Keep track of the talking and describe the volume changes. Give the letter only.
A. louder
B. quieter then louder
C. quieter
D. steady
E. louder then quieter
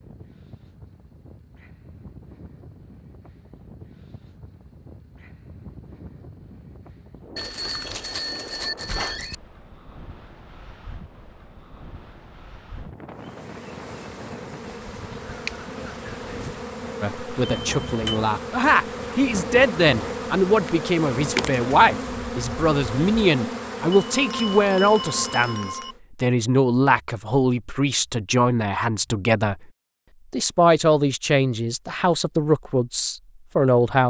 D.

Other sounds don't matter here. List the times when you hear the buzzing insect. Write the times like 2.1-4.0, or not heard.
13.1-26.0.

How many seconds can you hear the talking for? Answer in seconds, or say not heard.
16 s.